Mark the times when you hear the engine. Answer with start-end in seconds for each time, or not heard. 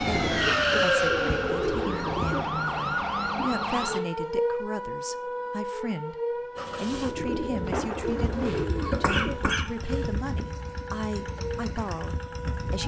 6.5-12.8.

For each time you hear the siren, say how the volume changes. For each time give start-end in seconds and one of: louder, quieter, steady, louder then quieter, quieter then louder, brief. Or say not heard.
0.0-12.8 quieter.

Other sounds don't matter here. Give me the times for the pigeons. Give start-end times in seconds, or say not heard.
0.0-2.6, 7.0-9.6.